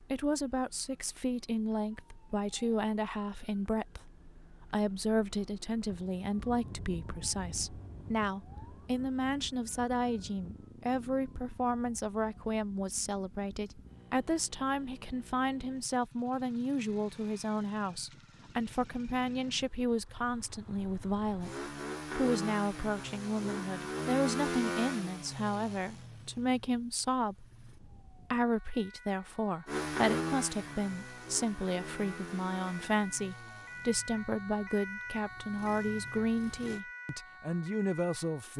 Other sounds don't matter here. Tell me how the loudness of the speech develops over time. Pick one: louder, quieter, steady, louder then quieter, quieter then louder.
steady.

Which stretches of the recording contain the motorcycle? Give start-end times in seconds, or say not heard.
8.5-27.8, 29.6-36.8.